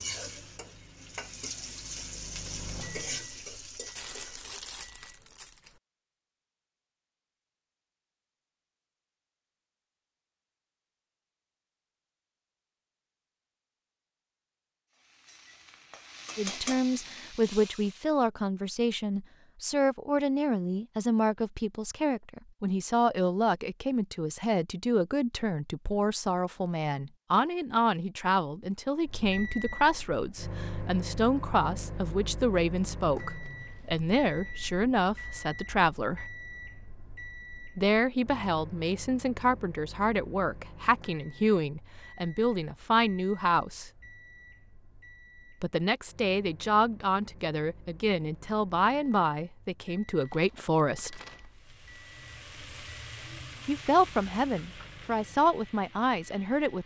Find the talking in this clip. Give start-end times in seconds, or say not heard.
16.4-36.2, 37.8-43.9, 45.6-51.2, 53.6-56.8.